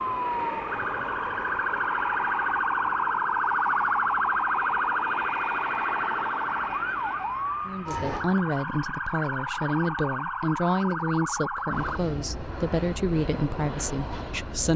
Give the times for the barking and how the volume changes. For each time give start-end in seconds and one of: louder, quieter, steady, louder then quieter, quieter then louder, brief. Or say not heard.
not heard.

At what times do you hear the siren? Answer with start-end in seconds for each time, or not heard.
0.0-12.0.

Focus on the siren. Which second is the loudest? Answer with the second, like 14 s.
4 s.